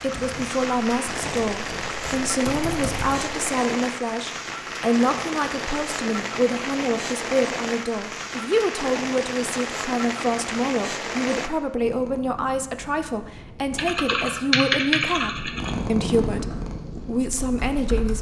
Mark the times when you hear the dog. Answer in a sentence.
The dog can't be heard in this clip.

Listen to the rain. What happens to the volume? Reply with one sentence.
The volume of the rain stays about the same.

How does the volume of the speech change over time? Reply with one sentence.
The volume of the speech stays about the same.